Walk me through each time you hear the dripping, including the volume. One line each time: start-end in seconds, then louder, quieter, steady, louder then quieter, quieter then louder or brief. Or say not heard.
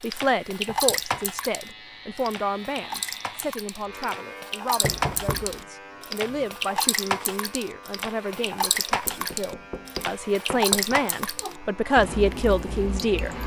0.0-13.4 steady.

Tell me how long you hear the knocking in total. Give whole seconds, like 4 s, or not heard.
3 s.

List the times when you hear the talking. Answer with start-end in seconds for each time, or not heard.
0.0-13.4.